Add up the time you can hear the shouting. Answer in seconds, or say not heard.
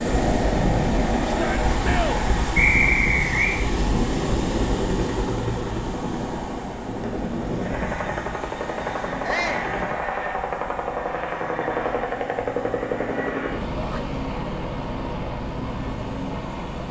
2 s.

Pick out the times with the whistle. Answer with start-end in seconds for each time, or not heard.
2.5-3.5.